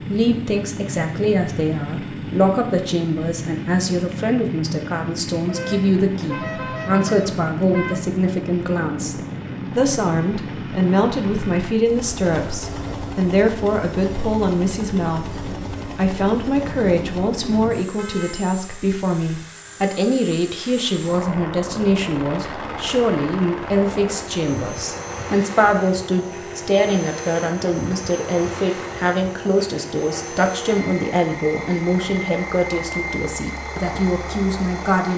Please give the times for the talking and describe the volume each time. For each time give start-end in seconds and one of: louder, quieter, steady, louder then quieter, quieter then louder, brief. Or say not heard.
0.1-9.2 steady
9.8-35.1 steady.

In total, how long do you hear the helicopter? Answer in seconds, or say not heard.
35 s.